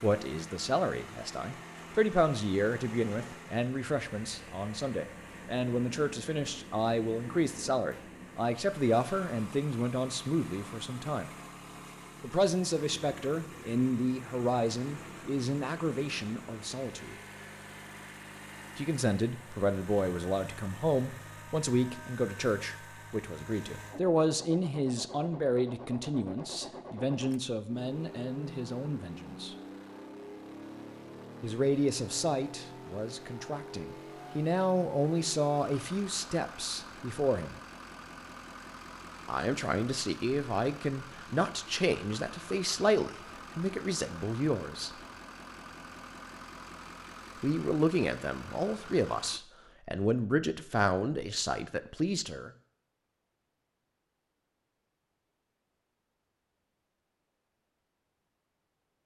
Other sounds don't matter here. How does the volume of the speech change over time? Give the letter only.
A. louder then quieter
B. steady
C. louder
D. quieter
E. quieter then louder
B.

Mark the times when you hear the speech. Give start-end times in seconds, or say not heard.
0.0-11.3, 12.2-17.1, 18.8-29.6, 31.4-37.6, 39.2-44.9, 47.4-52.5.